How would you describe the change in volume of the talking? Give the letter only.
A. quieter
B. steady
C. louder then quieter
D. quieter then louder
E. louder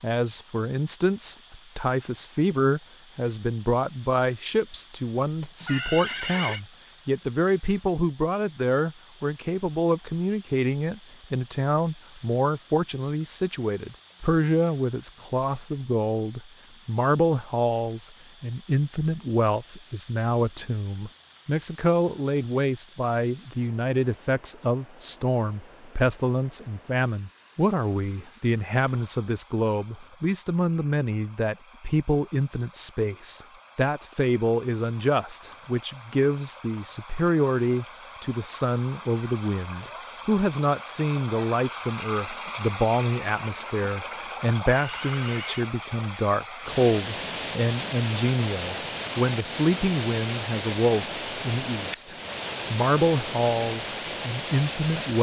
B.